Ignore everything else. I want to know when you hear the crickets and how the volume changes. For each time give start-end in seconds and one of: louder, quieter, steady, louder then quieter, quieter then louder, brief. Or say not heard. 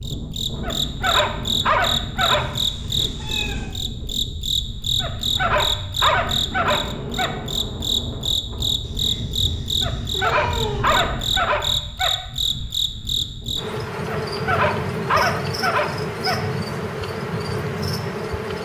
0.0-18.6 steady.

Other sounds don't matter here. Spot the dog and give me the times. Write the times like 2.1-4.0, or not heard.
0.6-2.5, 5.0-7.3, 9.8-12.1, 14.1-16.4.